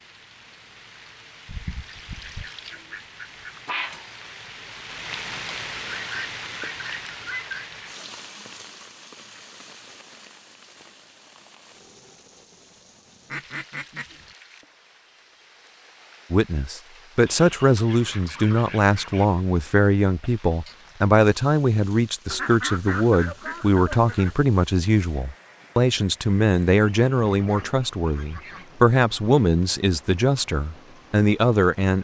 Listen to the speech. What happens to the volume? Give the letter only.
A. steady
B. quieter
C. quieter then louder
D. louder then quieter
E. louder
A.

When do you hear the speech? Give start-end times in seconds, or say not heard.
16.3-31.9.